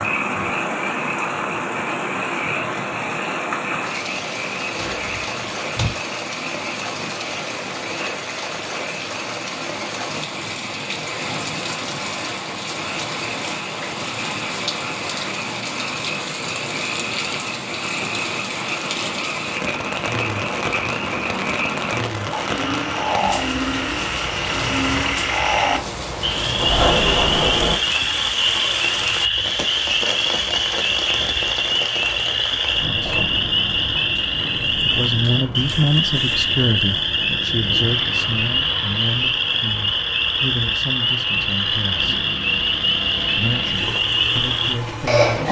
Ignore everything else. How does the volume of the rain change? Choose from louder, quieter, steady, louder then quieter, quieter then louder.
quieter.